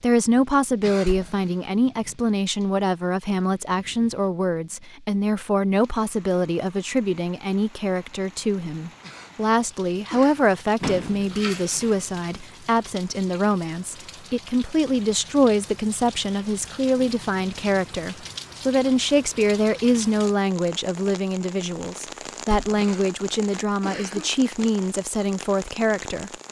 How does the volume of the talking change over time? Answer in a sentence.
The loudness of the talking stays about the same.